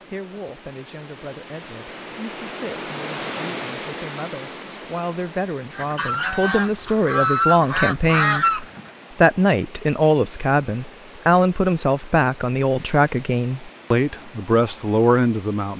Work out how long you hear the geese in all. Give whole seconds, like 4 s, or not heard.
3 s.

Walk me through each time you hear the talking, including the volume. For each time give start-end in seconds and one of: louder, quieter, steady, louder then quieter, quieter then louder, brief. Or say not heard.
0.1-15.7 louder.